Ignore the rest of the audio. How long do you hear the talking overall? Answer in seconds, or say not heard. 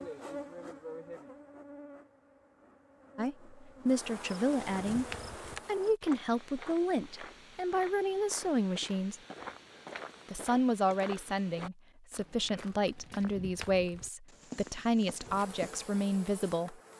12 s.